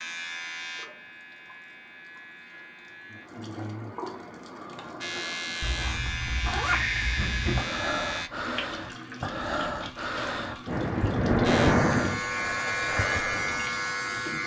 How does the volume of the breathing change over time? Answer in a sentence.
The loudness of the breathing goes up, then down.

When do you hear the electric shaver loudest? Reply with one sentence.
The loudest moment of the electric shaver is at 13 seconds.